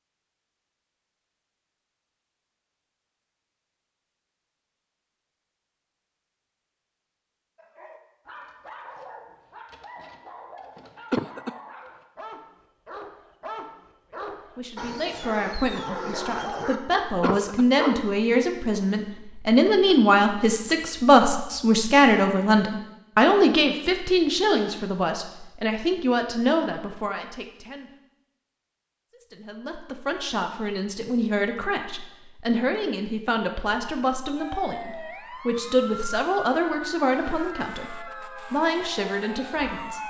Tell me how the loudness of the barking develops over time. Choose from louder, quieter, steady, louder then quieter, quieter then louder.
louder.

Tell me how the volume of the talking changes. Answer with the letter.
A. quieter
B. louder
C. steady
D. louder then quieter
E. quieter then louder
D.